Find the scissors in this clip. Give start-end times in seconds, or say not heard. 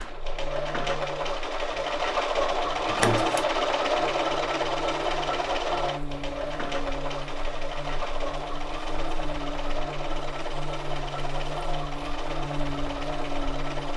2.9-3.5.